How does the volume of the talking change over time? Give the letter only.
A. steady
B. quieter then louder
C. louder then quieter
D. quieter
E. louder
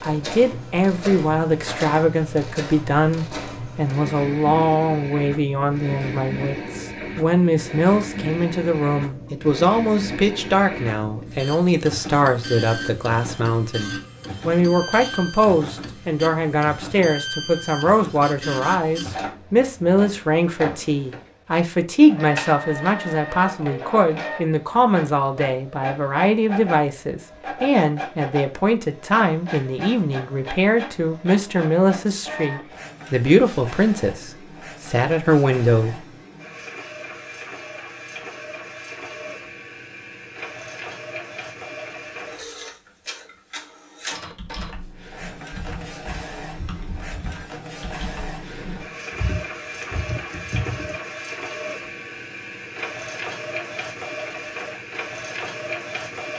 A.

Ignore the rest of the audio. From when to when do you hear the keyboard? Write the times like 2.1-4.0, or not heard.
44.2-51.0.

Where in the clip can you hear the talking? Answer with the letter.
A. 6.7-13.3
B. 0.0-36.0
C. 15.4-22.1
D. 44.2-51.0
B.